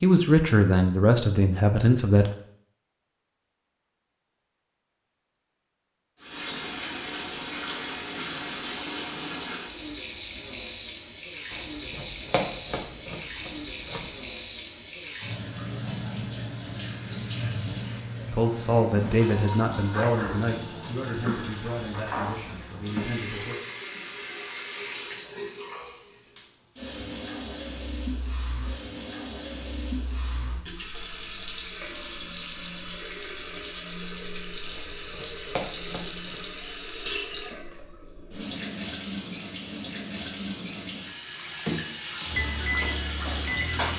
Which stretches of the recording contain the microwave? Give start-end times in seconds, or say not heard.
42.2-43.9.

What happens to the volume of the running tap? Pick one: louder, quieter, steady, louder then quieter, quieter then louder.
steady.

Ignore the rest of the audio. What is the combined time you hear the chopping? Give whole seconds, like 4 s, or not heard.
4 s.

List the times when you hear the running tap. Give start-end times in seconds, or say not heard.
6.2-43.9.